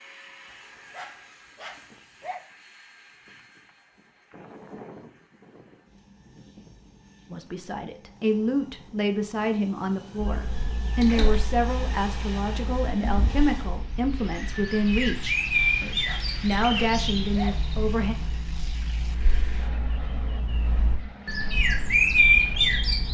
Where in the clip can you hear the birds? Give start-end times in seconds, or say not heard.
10.2-23.1.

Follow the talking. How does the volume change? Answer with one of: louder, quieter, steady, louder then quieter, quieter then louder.
steady.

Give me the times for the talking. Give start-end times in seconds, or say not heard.
7.3-18.1.